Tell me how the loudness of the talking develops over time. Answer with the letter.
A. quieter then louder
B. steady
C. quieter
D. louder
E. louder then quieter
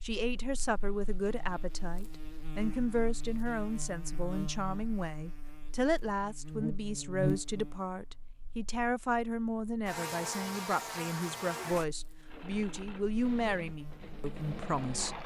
B.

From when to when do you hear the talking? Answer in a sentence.
You can hear the talking from 0.0 to 15.2 s.